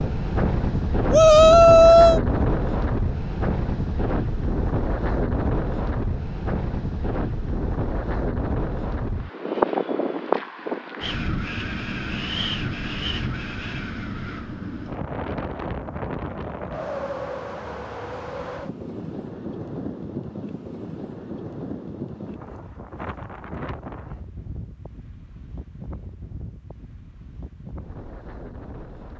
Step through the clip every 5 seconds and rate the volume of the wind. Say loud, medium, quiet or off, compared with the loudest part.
loud, loud, loud, medium, medium, quiet.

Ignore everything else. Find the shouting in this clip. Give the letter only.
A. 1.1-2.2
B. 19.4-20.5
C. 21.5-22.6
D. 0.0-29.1
A.